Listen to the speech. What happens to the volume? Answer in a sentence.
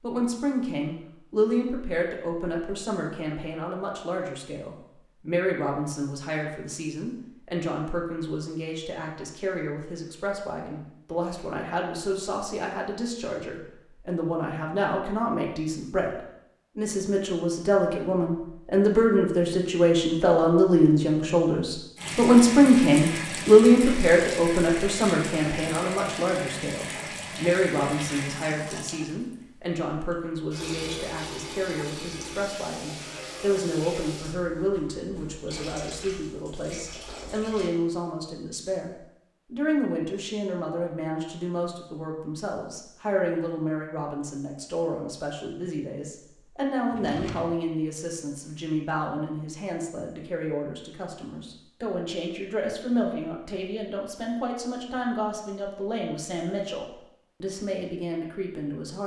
The volume of the speech goes up, then down.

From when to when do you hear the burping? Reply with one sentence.
You can't hear the burping here.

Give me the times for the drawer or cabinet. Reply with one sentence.
The drawer or cabinet can be heard from 46.9 to 47.5 s.